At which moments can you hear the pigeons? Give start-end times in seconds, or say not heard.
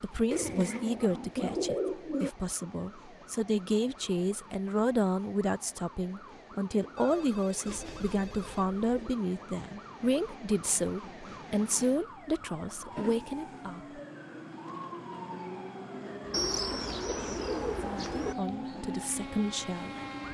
0.3-2.3, 7.7-9.2, 16.3-18.4.